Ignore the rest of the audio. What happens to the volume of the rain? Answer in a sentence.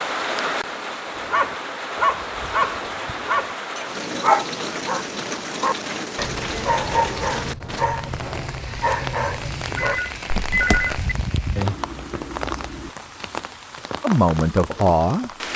The loudness of the rain stays about the same.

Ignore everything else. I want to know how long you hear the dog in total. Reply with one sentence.
The dog can be heard for 10 seconds in total.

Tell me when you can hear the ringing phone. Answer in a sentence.
You can hear the ringing phone from 9.8 to 11.1 s.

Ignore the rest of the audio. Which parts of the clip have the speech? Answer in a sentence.
The speech can be heard from 14.0 to 15.3 s.